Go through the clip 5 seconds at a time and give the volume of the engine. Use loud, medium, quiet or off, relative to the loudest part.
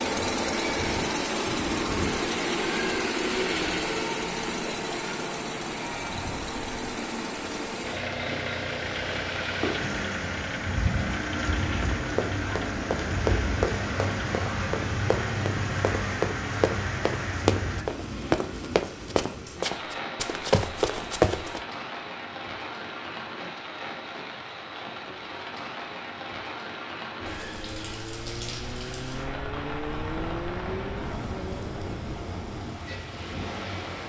loud, medium, medium, off, off, medium, medium.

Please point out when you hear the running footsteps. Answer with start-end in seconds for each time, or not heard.
11.8-21.6.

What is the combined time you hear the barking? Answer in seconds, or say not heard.
not heard.